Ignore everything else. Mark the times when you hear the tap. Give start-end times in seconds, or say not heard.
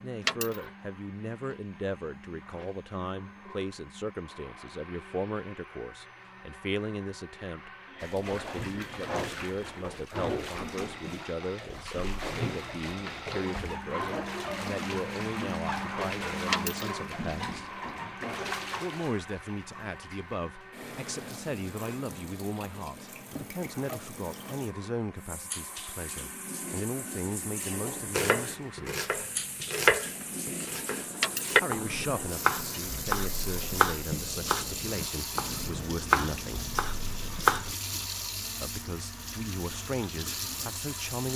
8.0-41.3.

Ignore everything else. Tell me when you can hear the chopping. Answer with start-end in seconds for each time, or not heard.
28.1-37.8.